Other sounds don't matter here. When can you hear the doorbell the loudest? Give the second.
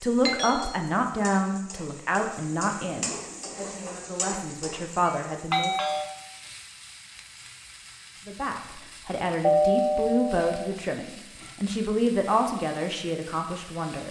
10 s.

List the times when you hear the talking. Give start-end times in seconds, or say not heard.
0.0-5.8, 8.2-14.0.